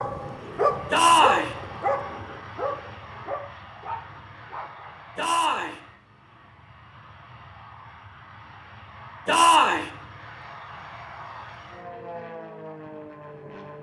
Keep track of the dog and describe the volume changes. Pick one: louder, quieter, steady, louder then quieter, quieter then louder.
quieter.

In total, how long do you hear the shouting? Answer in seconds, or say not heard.
2 s.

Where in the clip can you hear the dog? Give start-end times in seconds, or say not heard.
0.0-5.0.